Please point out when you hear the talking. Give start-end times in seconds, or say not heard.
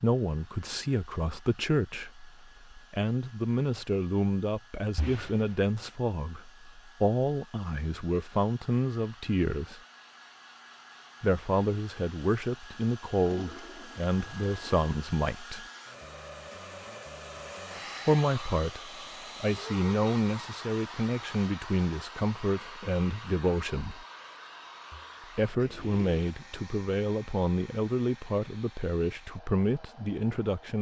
0.0-9.8, 11.2-15.7, 18.1-24.1, 25.4-30.7.